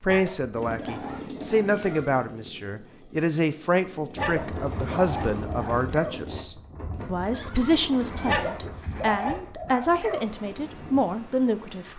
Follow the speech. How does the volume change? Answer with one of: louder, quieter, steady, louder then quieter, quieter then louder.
steady.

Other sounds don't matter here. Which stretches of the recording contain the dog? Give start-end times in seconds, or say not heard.
0.1-2.0, 4.2-6.2, 8.2-10.2.